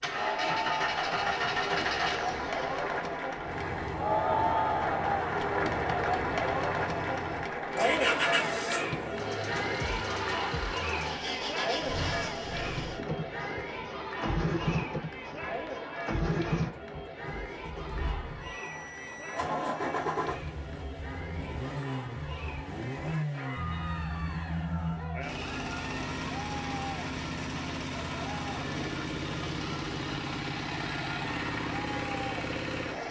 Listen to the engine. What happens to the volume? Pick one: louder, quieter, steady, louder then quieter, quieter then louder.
steady.